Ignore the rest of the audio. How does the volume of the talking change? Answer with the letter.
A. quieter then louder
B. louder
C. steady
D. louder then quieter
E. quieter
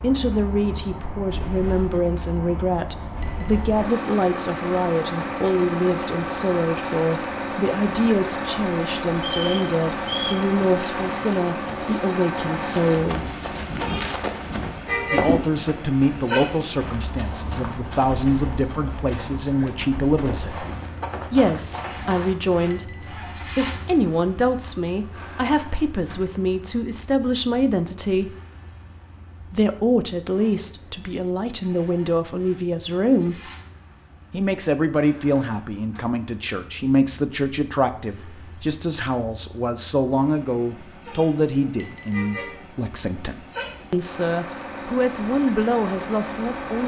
C.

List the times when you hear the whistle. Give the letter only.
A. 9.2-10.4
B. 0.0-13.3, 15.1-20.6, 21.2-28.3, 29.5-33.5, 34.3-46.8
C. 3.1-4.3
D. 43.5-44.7
A.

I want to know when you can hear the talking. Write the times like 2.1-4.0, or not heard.
0.0-13.3, 15.1-20.6, 21.2-28.3, 29.5-33.5, 34.3-46.8.